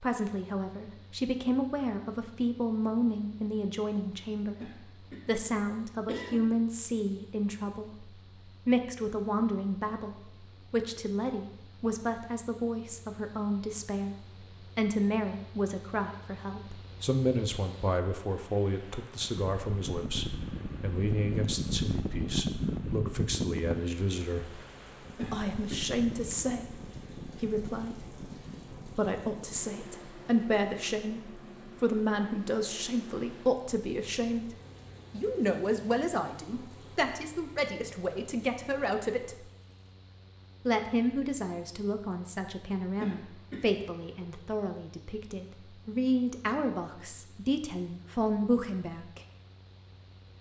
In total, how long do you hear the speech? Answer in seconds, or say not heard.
46 s.